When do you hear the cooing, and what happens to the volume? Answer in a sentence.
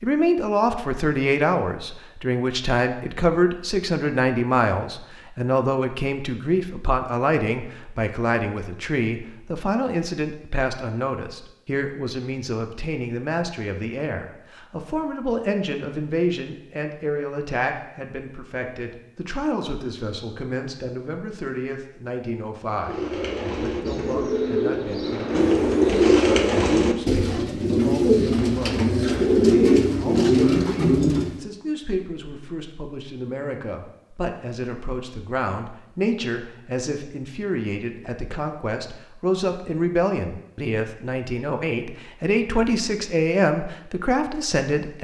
You can hear the cooing from 22.8 to 31.4 s, getting louder.